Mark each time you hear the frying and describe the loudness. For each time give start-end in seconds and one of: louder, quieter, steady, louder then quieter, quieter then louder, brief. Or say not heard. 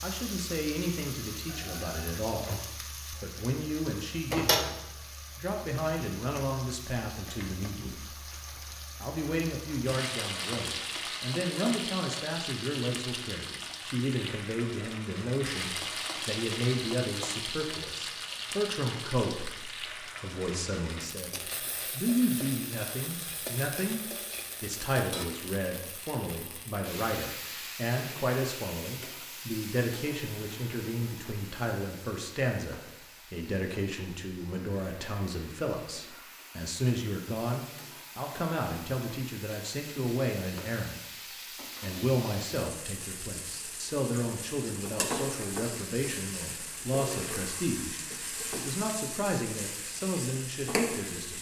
0.0-51.3 quieter then louder.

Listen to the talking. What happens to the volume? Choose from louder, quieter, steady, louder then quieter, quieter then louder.
steady.